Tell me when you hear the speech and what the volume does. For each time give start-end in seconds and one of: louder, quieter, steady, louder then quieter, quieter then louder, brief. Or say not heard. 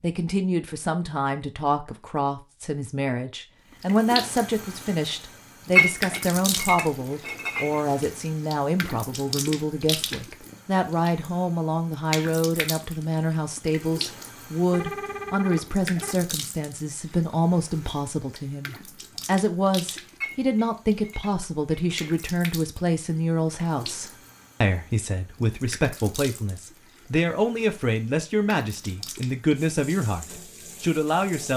0.0-31.5 steady.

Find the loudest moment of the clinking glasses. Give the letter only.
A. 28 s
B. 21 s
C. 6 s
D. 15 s
C.